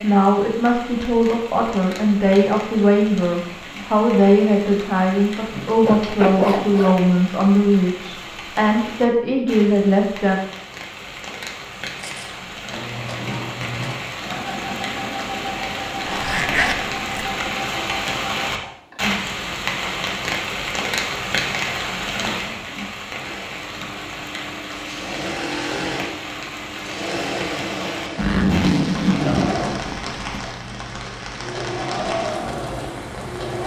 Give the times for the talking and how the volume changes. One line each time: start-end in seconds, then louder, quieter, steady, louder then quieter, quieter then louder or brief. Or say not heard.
0.0-10.3 steady.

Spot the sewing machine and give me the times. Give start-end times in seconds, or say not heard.
11.8-19.2, 23.1-33.6.